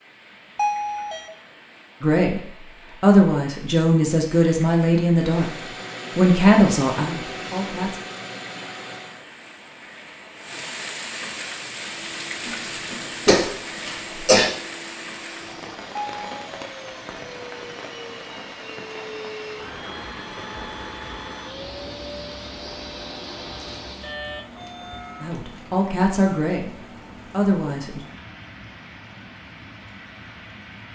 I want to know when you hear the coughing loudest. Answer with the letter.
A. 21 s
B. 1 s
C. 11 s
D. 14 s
D.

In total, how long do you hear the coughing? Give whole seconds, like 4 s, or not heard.
2 s.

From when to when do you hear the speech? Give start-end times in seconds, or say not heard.
2.0-5.5, 6.2-8.0, 25.2-28.0.